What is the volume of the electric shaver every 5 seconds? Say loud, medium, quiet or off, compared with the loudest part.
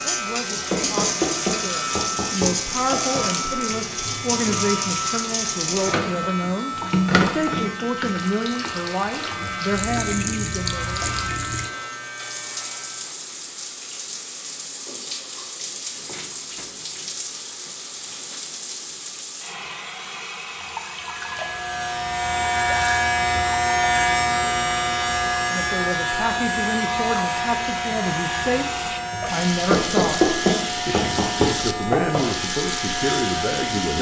medium, medium, medium, off, loud, loud, medium.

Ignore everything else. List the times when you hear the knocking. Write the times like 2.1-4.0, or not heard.
0.7-3.2, 29.6-32.2.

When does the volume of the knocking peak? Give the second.
30 s.